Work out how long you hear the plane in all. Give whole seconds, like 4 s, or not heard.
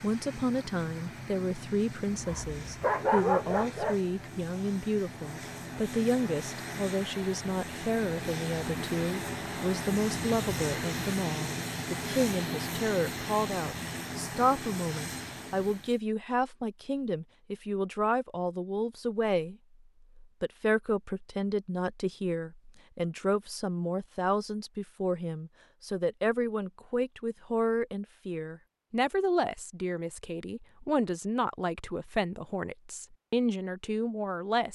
16 s.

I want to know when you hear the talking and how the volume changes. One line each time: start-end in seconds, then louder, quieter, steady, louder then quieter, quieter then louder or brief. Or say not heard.
0.0-19.6 steady
20.2-34.7 steady.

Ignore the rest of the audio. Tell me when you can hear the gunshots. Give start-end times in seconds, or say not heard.
not heard.